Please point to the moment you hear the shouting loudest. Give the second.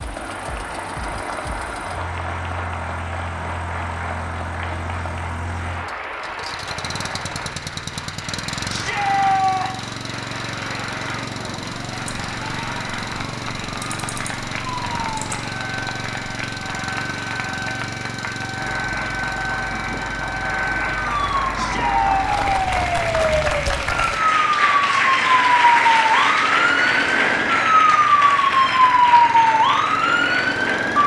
9 s.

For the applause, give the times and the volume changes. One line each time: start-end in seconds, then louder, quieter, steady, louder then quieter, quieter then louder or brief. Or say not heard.
0.0-31.0 louder.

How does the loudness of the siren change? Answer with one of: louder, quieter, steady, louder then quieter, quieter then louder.
louder.